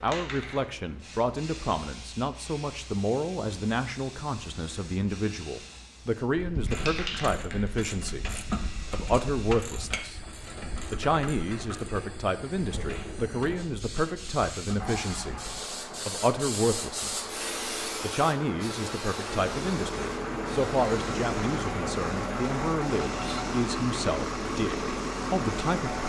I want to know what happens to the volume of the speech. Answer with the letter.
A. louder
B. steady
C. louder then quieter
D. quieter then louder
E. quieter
B.